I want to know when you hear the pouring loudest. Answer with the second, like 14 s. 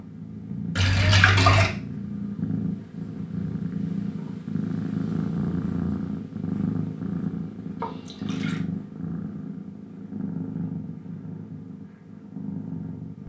1 s.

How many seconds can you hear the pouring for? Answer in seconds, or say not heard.
2 s.